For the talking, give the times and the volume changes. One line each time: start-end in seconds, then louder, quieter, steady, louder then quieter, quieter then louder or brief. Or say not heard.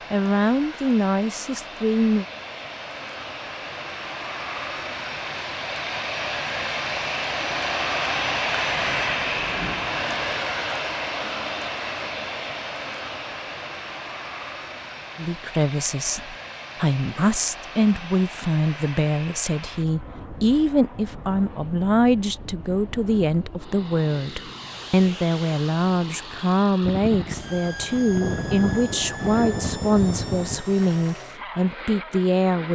0.1-2.2 brief
15.2-32.7 steady.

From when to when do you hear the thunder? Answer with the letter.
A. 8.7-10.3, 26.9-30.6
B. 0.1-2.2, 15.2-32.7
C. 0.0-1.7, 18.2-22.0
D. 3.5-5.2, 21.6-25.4
A.